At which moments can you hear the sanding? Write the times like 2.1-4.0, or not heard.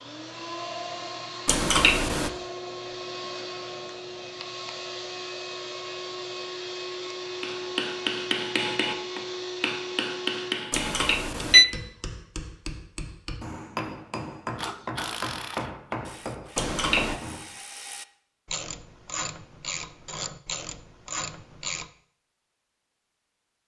not heard.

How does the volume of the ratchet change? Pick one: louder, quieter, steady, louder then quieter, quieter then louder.
quieter then louder.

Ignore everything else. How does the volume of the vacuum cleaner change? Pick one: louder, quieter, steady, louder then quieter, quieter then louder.
steady.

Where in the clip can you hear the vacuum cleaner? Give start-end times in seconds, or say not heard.
0.0-10.7.